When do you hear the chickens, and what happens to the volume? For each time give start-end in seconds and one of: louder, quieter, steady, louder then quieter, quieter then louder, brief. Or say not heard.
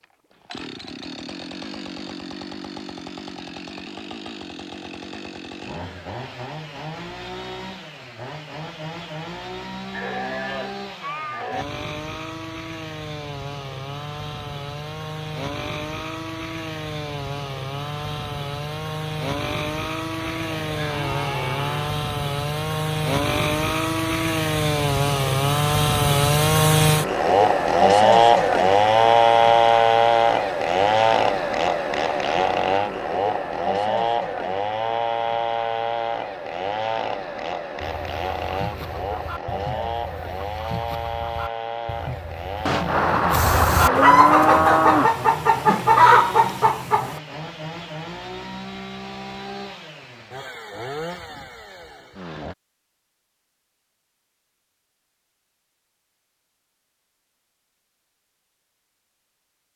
37.8-47.2 louder.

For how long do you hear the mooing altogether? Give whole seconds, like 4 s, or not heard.
6 s.